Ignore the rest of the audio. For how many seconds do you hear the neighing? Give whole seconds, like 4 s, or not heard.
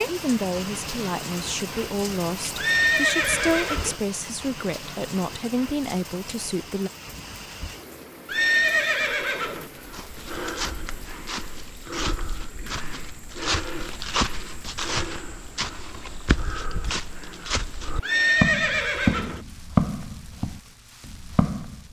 4 s.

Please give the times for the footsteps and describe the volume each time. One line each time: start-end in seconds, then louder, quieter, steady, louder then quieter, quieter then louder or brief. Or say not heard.
9.7-21.8 louder.